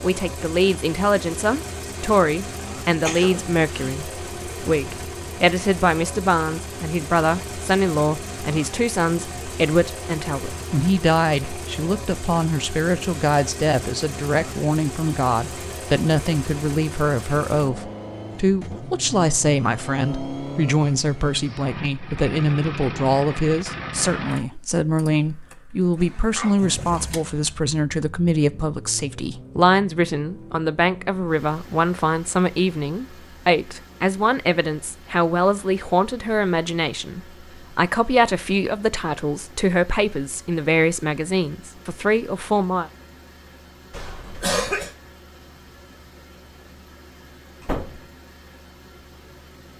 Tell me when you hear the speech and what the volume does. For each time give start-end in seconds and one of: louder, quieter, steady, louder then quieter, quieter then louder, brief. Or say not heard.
0.0-42.9 steady.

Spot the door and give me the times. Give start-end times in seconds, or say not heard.
47.6-48.0.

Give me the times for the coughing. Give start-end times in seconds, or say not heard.
3.0-4.0, 25.9-27.1, 43.9-44.9.